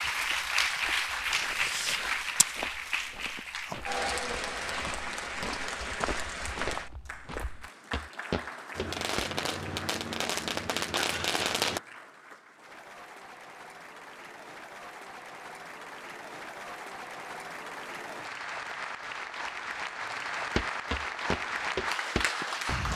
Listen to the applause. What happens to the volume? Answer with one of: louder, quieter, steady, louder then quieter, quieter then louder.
quieter then louder.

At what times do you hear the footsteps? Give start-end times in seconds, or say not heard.
0.0-9.3, 20.6-22.9.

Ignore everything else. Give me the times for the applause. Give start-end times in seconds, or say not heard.
0.0-22.9.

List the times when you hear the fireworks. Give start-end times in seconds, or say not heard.
8.7-11.8.